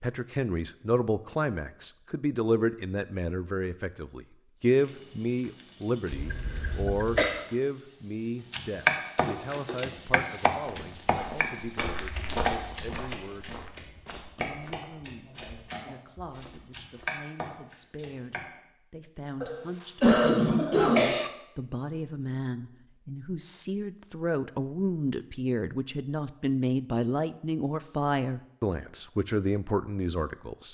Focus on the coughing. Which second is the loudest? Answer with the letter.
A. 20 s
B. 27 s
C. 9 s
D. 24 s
A.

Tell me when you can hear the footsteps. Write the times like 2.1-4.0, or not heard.
10.7-17.2.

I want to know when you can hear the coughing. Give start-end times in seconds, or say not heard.
6.1-7.5, 19.4-21.3.